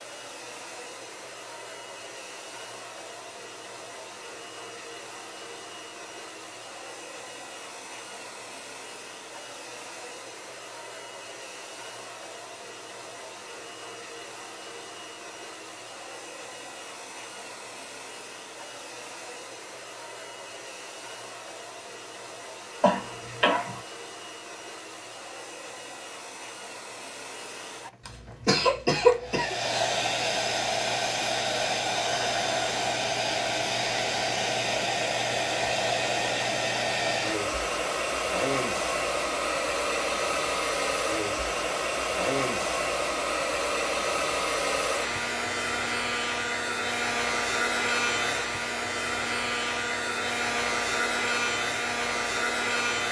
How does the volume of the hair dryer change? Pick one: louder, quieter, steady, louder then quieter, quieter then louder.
louder.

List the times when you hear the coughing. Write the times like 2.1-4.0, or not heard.
22.8-23.8, 28.1-29.6.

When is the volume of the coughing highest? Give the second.
29 s.